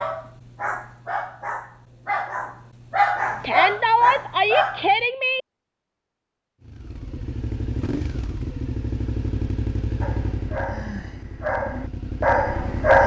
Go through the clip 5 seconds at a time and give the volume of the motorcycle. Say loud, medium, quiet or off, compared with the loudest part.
off, loud, loud.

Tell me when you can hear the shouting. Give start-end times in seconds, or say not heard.
3.4-5.4.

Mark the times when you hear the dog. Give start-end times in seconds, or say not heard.
0.0-5.0, 10.0-13.0.